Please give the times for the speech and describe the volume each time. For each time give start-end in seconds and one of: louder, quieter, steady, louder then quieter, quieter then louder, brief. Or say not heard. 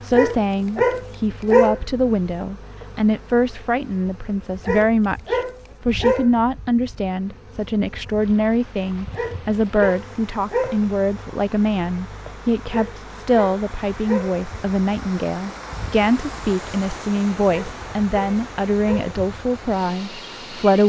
0.0-20.8 steady.